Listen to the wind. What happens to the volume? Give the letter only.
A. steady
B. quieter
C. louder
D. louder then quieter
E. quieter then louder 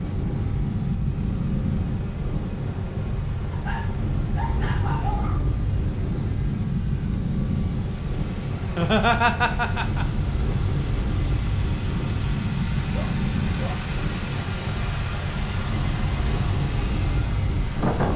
A.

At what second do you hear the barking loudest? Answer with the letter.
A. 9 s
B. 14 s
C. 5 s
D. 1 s
C.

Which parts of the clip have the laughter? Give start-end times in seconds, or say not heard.
8.6-10.1.